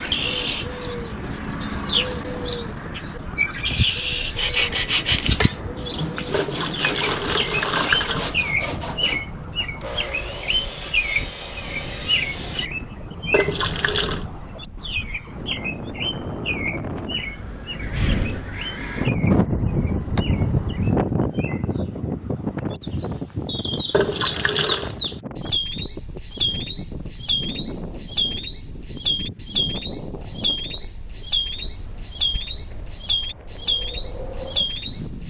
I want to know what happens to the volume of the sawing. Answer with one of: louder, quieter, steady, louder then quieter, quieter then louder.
quieter.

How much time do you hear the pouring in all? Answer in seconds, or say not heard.
4 s.